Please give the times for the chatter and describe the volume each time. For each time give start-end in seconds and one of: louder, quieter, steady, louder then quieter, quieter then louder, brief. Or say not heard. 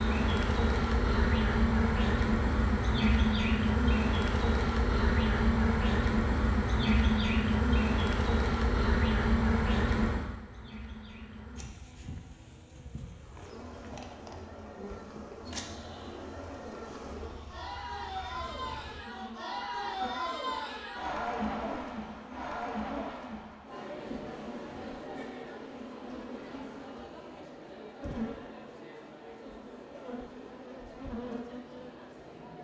13.2-32.6 louder then quieter.